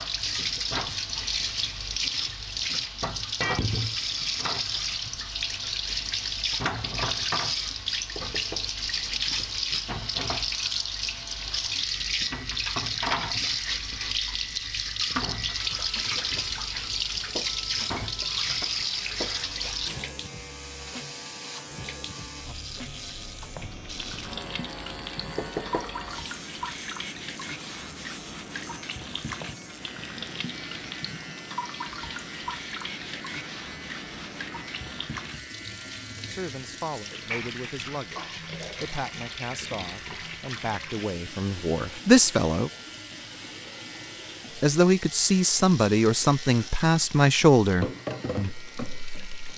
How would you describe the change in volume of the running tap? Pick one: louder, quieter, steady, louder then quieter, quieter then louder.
quieter.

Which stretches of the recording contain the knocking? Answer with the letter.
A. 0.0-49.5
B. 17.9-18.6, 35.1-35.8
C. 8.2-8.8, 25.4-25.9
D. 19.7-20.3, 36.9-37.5
C.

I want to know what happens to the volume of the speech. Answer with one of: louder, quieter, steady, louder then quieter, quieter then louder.
louder.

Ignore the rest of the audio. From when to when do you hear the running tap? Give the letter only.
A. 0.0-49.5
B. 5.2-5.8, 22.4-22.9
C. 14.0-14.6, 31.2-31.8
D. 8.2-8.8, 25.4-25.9
A.